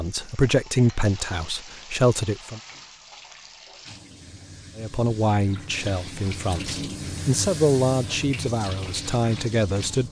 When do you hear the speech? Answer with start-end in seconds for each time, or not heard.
0.0-2.6, 4.8-10.0.